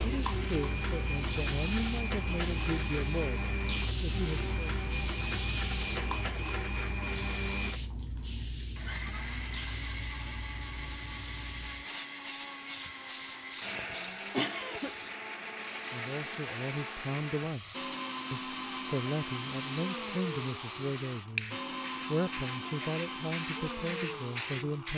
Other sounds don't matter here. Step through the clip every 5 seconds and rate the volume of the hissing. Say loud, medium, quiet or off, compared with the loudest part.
loud, loud, medium, medium, loud.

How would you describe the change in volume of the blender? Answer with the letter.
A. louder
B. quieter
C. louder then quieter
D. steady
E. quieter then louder
D.